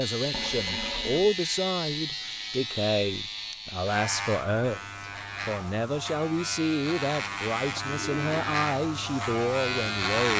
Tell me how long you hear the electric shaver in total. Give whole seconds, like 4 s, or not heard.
10 s.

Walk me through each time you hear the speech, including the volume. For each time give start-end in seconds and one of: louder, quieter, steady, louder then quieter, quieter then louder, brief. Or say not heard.
0.0-10.3 steady.